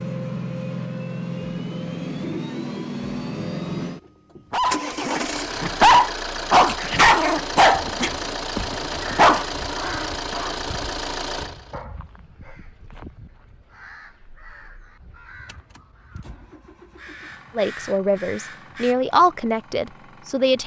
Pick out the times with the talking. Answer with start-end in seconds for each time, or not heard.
17.6-20.6.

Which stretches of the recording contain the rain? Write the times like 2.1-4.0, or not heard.
not heard.